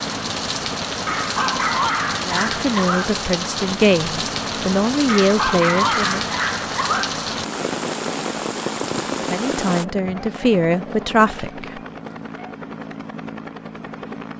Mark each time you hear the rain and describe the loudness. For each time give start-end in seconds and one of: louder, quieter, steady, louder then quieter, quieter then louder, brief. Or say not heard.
0.0-9.8 steady.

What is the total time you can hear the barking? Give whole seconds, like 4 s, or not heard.
7 s.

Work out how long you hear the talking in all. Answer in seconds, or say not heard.
7 s.